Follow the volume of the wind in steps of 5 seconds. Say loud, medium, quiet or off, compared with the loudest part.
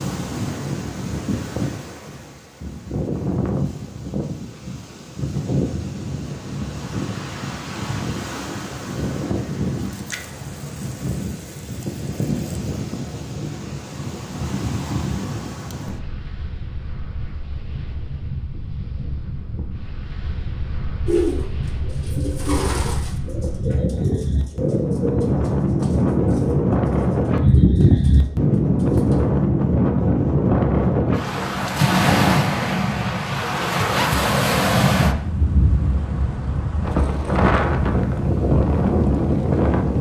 medium, medium, medium, quiet, medium, loud, loud, loud.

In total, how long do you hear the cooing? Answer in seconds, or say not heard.
8 s.